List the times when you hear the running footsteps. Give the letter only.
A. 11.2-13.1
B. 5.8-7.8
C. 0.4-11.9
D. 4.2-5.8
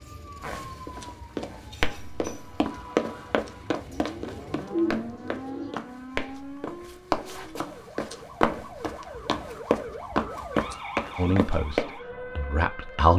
C.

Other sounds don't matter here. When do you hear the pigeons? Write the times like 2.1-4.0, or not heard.
4.2-5.8.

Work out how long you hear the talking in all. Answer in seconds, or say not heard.
2 s.